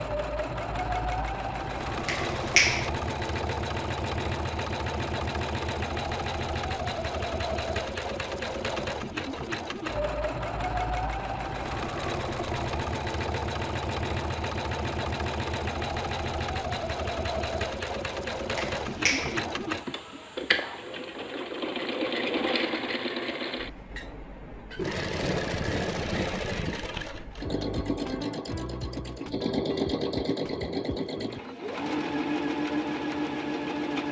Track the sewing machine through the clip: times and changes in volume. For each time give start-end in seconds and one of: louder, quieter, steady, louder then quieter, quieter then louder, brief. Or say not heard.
0.0-34.0 steady.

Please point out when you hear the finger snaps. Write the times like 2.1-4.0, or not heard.
2.0-2.9, 18.6-19.4.